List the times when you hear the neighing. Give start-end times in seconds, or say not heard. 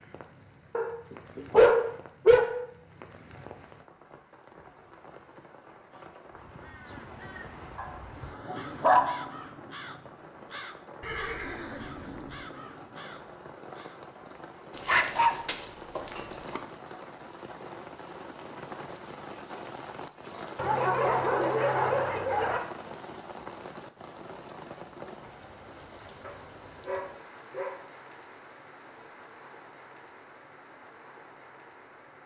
11.0-12.4.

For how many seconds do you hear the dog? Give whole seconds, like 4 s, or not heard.
9 s.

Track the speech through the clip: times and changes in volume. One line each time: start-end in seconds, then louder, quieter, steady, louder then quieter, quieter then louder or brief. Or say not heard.
not heard.